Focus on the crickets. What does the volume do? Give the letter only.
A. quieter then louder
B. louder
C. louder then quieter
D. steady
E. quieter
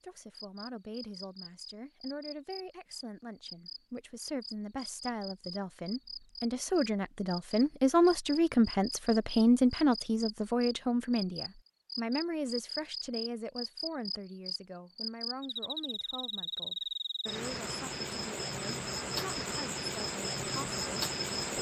B.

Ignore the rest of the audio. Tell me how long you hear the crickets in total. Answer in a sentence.
The crickets can be heard for 21 seconds in total.